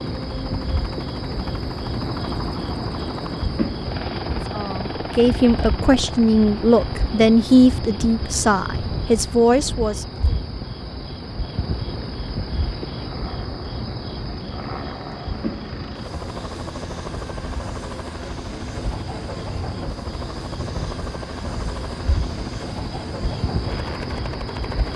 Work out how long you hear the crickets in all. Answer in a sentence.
The crickets can be heard for 25 seconds in total.